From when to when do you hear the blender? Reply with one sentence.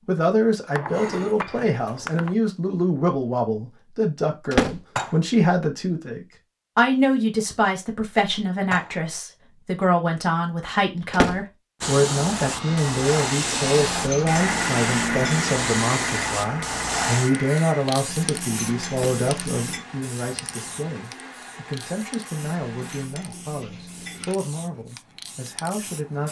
You can hear the blender from 12.6 to 23.1 s.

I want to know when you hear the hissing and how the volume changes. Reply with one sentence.
The hissing can be heard from 11.8 to 26.2 s, getting quieter.